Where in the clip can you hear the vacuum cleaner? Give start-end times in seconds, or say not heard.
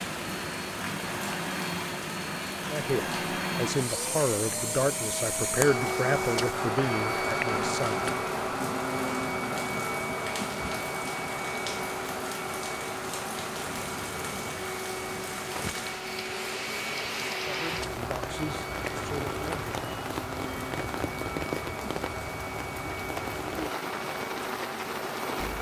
0.0-25.5.